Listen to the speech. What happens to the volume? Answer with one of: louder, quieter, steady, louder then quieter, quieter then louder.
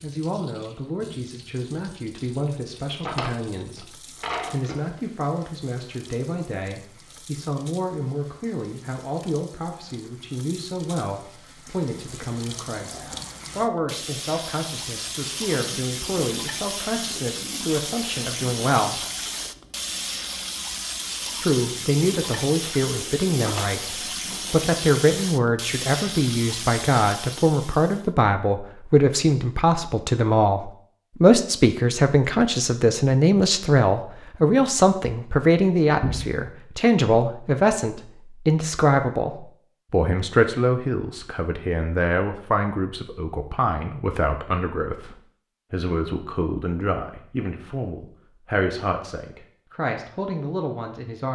louder then quieter.